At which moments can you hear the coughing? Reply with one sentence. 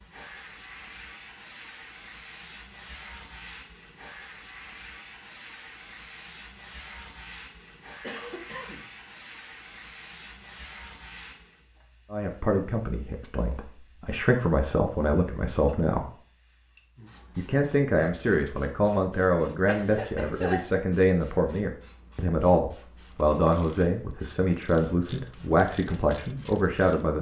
The coughing can be heard from 8.0 to 8.9 s and from 19.6 to 20.8 s.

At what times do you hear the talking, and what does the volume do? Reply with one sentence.
You can hear the talking from 12.1 to 16.1 s, getting quieter then louder; and from 17.4 to 27.1 s, at a steady volume.